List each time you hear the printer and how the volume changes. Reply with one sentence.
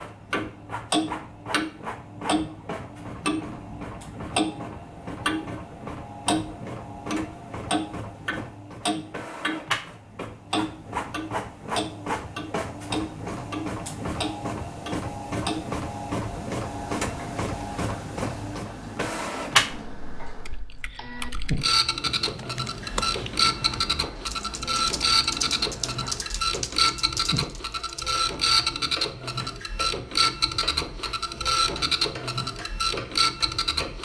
The printer can be heard from 0.0 to 34.0 s, getting louder.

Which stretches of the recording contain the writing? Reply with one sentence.
You can't hear the writing here.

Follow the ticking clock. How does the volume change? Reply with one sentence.
The volume of the ticking clock goes down.